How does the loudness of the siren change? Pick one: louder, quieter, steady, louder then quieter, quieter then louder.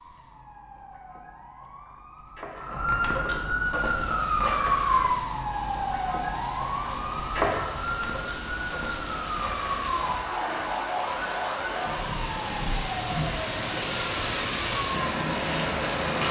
louder then quieter.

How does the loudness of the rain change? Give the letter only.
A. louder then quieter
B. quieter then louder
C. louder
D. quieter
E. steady
C.